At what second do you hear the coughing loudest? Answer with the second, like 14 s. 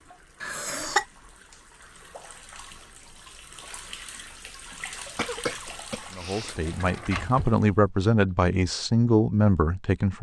1 s.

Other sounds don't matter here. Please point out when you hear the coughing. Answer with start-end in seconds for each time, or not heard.
0.4-1.1, 5.2-6.8.